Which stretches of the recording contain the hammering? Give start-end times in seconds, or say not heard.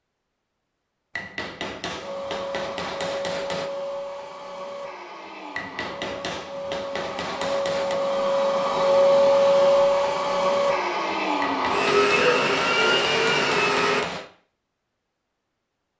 1.1-3.7, 5.5-8.0, 11.4-14.3.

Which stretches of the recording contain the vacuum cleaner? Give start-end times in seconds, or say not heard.
2.0-14.1.